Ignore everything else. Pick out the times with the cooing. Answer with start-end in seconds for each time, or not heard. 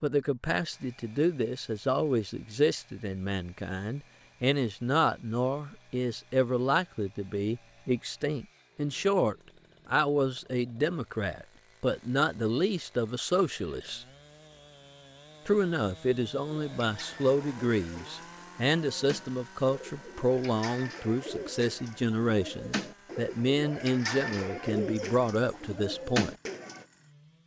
16.4-26.9.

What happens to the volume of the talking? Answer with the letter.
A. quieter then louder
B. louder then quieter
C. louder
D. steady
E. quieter
D.